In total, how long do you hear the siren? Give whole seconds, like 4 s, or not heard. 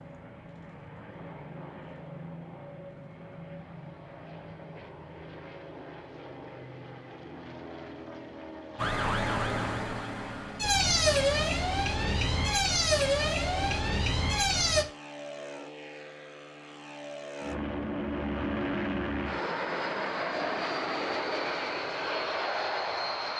6 s.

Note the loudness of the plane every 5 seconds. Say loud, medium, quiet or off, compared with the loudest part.
quiet, quiet, quiet, loud, loud.